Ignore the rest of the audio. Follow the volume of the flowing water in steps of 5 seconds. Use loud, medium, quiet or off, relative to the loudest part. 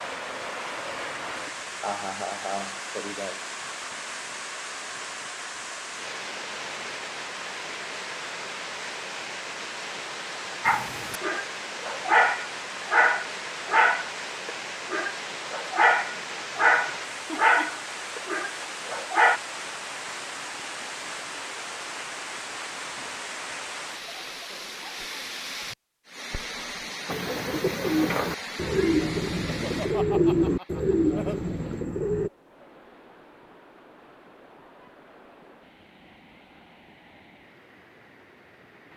loud, loud, loud, loud, loud, loud, quiet, quiet.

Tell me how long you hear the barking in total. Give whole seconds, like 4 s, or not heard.
9 s.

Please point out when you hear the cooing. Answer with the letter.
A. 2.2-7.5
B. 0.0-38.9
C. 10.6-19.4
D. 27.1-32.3
D.